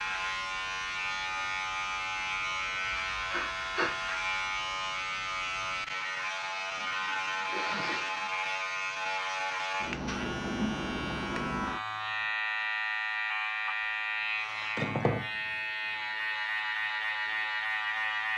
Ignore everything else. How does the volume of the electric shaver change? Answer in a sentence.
The loudness of the electric shaver stays about the same.